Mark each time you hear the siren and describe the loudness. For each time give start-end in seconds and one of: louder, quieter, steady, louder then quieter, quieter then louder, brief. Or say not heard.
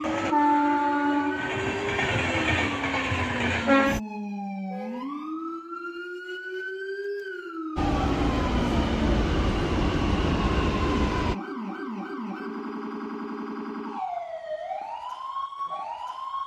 0.0-16.4 steady.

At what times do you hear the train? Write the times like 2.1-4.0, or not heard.
0.0-4.0, 7.8-11.3.